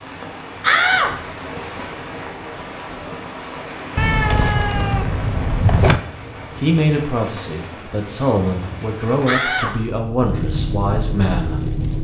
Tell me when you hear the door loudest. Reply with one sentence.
The loudest moment of the door is at 1 second.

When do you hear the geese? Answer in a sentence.
You can't hear the geese here.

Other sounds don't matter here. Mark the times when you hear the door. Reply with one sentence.
The door can be heard from 0.6 to 1.1 s and from 9.2 to 10.0 s.